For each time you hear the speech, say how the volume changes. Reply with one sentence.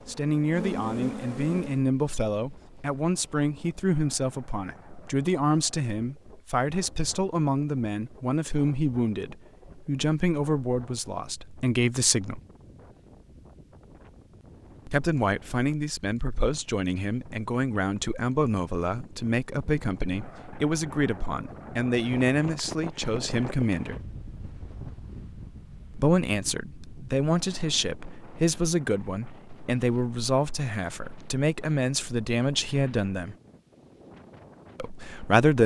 The speech can be heard from 0.1 to 12.4 s, at a steady volume; from 14.8 to 24.0 s, at a steady volume; from 25.9 to 33.4 s, at a steady volume; and briefly from 34.8 to 35.6 s.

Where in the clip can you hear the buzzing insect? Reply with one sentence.
The buzzing insect can be heard from 0.0 to 1.9 s.